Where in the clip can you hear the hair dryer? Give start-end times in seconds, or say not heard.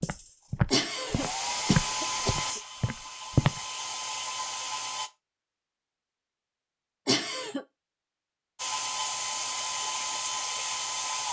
0.0-5.1, 8.6-11.2.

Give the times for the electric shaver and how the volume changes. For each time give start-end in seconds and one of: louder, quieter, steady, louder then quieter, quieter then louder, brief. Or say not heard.
not heard.